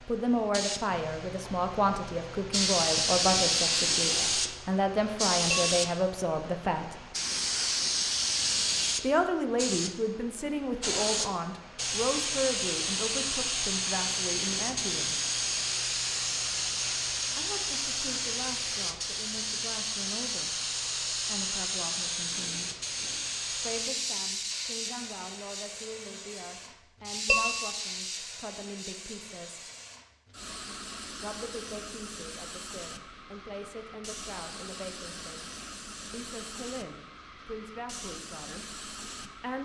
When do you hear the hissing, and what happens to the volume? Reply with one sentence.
You can hear the hissing from 0.0 to 39.6 s, getting quieter.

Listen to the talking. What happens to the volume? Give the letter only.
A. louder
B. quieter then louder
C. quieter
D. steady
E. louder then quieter
C.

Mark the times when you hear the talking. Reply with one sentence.
The talking can be heard from 0.1 to 7.0 s, from 9.0 to 15.2 s, from 17.4 to 22.7 s, from 23.5 to 29.7 s, from 31.2 to 35.5 s and from 36.1 to 39.6 s.